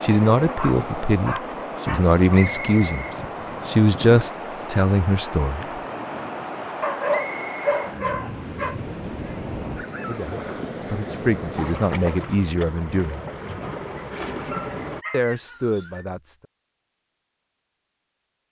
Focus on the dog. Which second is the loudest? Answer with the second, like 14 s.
7 s.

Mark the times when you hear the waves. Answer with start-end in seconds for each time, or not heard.
0.0-15.1.